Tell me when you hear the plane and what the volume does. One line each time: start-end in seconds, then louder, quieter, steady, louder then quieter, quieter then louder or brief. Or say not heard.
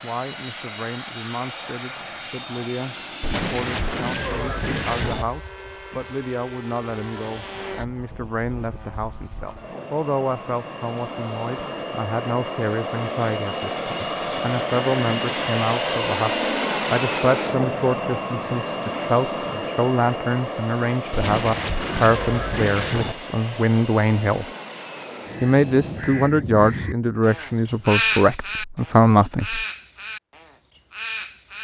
0.0-26.2 louder then quieter.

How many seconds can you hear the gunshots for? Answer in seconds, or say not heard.
4 s.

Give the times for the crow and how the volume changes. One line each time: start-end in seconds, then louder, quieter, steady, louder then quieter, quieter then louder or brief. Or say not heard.
25.2-31.6 louder then quieter.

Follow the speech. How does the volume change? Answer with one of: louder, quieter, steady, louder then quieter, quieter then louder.
louder.